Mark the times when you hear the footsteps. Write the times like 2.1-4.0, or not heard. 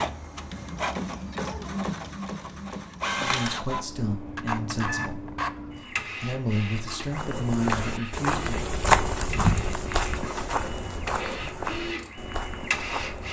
7.0-13.2.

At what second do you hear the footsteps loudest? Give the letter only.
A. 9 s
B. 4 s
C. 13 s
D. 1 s
A.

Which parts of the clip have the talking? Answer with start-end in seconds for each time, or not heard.
3.1-8.7.